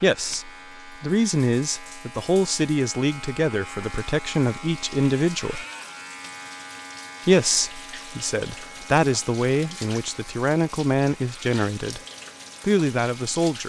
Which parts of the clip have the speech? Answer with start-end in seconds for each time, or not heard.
0.0-5.7, 7.2-12.0, 12.6-13.6.